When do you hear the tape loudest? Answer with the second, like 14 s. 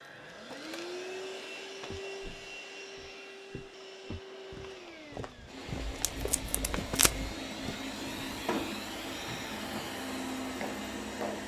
7 s.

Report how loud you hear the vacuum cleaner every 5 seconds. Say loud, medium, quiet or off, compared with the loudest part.
medium, loud, loud.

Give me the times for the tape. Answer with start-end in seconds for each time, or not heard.
5.8-7.3.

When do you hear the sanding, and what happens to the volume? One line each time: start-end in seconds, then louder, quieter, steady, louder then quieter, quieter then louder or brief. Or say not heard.
not heard.